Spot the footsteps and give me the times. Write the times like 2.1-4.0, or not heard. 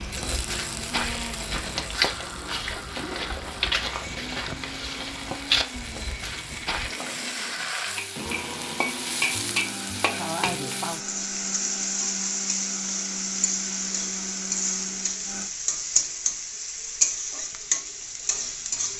0.0-6.9.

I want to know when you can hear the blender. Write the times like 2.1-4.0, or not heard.
0.0-15.5.